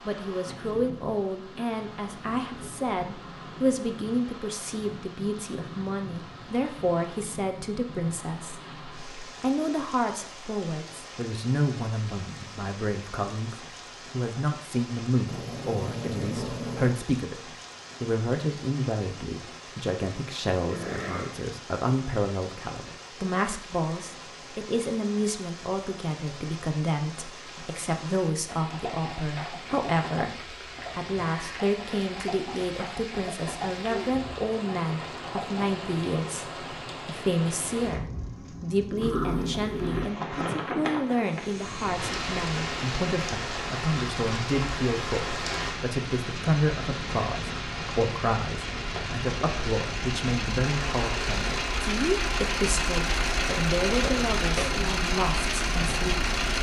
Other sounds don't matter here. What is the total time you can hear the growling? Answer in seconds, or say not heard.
4 s.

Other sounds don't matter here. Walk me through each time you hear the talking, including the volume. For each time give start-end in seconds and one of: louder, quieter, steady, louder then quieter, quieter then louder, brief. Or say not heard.
0.0-56.2 steady.